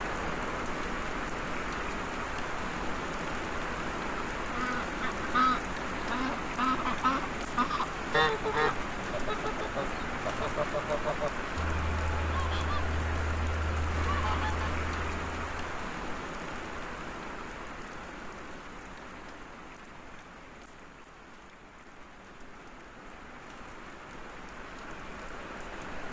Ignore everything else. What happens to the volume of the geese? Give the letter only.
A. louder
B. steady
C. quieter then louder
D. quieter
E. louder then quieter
D.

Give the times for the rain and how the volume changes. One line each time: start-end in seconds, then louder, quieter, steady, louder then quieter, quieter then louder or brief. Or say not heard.
0.0-26.0 quieter.